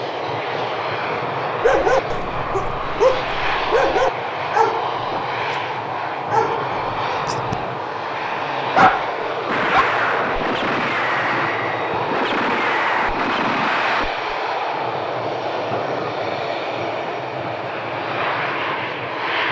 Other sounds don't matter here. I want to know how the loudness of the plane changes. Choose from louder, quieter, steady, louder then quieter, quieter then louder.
steady.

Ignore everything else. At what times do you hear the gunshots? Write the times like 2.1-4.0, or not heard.
9.4-14.2.